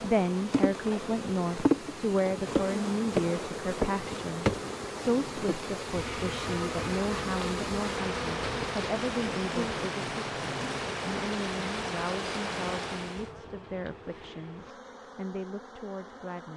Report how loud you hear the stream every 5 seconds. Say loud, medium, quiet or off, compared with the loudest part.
medium, loud, loud, off.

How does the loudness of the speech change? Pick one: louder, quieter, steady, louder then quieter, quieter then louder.
quieter.